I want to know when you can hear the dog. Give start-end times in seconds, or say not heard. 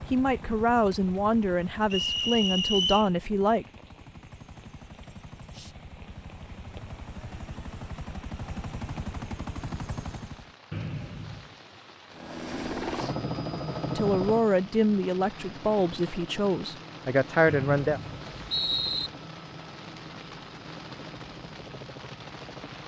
not heard.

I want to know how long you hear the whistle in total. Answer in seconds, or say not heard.
4 s.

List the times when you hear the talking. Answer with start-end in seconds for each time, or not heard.
0.1-3.6, 13.9-18.0.